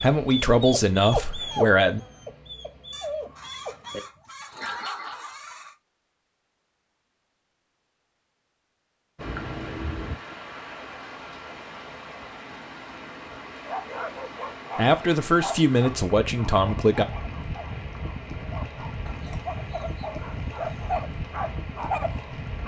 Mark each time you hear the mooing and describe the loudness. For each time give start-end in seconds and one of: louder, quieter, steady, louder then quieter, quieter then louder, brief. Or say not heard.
not heard.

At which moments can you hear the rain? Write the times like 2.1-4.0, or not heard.
9.2-22.6.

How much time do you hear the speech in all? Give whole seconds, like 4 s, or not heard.
4 s.